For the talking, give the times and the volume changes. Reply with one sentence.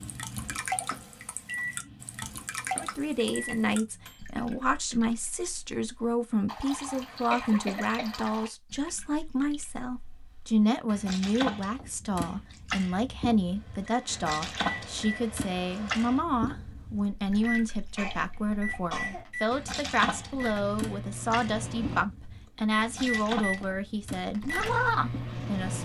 You can hear the talking from 2.8 to 25.8 s, at a steady volume.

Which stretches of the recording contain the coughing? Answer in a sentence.
You can hear the coughing from 7.3 to 8.3 s and from 17.9 to 19.2 s.